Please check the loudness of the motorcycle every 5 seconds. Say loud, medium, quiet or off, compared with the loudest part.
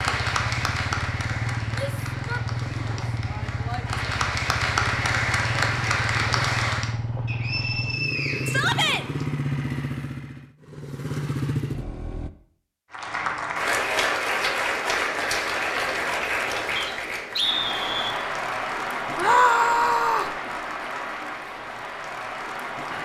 loud, loud, loud, off, off.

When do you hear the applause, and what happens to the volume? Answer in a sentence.
The applause can be heard from 0.0 to 7.0 s, getting quieter then louder; and from 12.9 to 23.0 s, getting quieter.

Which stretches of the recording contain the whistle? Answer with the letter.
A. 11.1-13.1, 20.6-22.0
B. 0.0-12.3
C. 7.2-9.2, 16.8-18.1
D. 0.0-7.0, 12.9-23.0
C.